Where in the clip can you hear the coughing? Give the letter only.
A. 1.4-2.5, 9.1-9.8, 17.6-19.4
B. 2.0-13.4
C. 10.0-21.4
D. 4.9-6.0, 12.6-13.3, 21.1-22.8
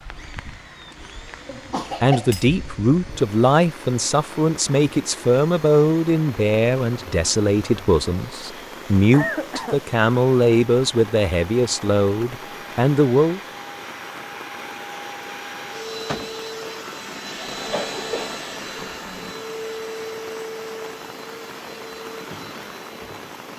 A.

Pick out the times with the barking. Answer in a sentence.
You can't hear the barking here.